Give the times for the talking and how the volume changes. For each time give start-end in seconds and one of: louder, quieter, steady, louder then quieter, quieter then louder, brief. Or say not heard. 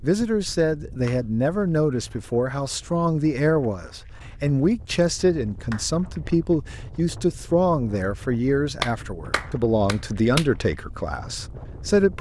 0.0-12.1 steady.